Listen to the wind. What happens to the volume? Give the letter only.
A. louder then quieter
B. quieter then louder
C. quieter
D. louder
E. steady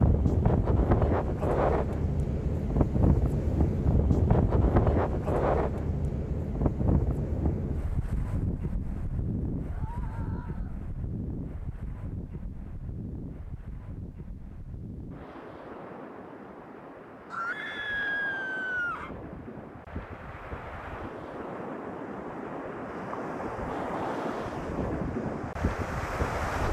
B.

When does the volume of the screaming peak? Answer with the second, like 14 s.
18 s.